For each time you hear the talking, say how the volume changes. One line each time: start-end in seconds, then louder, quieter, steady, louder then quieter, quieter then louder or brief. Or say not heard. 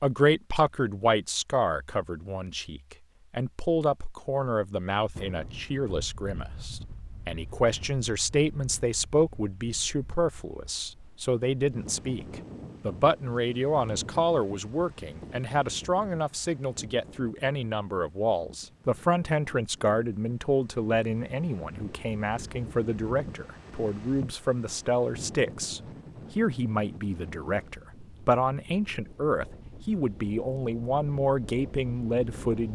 0.0-32.6 steady.